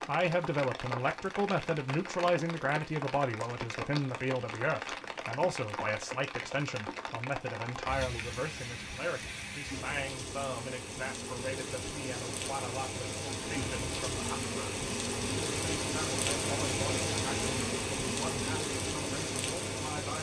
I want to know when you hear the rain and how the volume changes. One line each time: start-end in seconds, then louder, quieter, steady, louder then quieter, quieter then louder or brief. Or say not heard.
0.0-20.1 louder.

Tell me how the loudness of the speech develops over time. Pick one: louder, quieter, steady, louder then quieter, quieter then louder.
quieter.